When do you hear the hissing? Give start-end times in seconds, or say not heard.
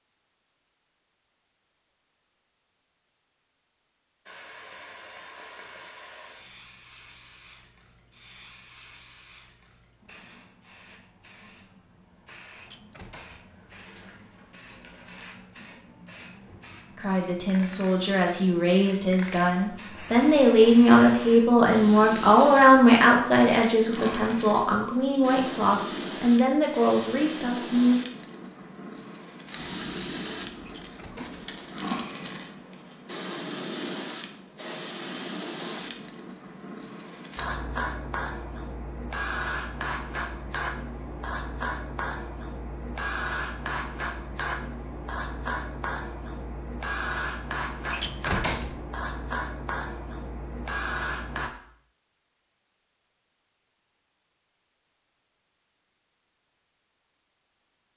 4.2-51.5.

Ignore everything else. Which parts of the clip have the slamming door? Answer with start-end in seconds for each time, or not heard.
12.6-13.5, 30.6-31.4, 47.9-48.9.